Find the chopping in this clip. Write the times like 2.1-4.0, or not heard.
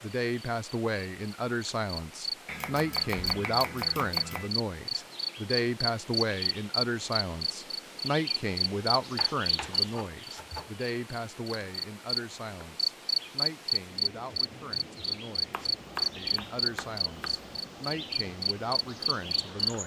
2.5-4.5, 9.2-10.8, 15.5-17.4.